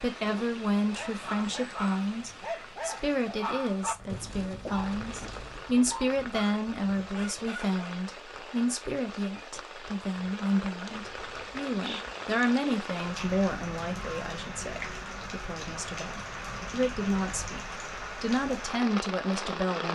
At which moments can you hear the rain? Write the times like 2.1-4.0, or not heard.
0.0-19.8.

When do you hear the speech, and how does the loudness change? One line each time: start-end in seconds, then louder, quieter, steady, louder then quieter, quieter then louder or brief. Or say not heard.
0.0-19.8 steady.